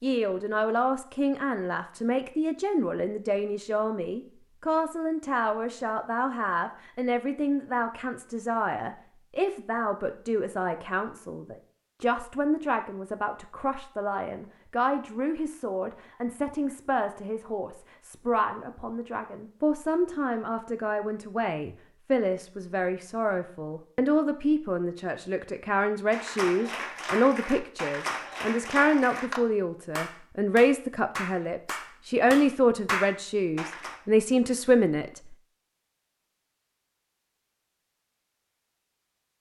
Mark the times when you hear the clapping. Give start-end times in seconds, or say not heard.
26.1-34.0.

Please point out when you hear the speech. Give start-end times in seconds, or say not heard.
0.0-35.4.